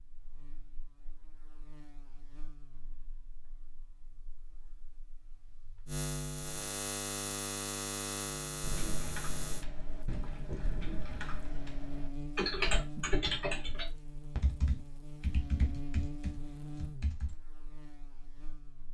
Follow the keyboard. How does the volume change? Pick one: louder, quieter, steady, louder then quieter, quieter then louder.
louder then quieter.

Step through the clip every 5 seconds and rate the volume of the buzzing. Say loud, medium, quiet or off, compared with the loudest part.
quiet, loud, medium, medium.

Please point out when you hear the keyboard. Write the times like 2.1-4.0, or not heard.
8.6-17.4.